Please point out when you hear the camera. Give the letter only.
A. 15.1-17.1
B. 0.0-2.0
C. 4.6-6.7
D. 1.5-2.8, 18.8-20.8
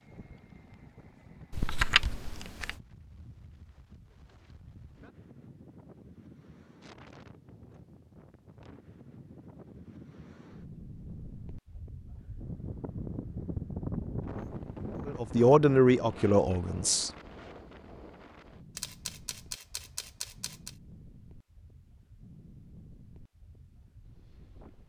D.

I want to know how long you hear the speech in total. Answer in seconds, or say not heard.
2 s.